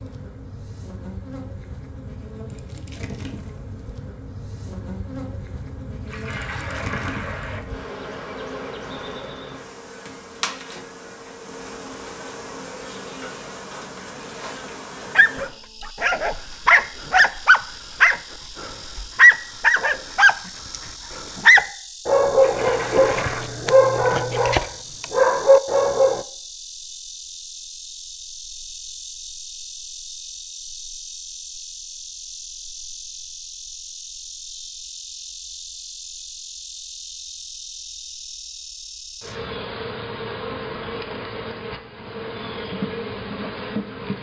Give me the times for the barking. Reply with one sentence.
You can hear the barking from 15.2 to 26.2 s.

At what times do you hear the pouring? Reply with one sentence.
You can hear the pouring from 6.0 to 7.6 s and from 22.4 to 23.4 s.